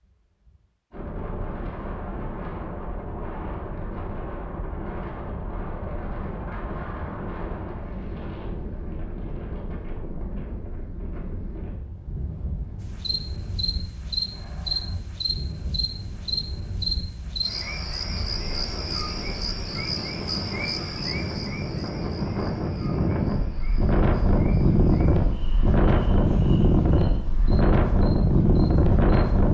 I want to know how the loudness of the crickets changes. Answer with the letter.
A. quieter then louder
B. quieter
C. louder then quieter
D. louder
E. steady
B.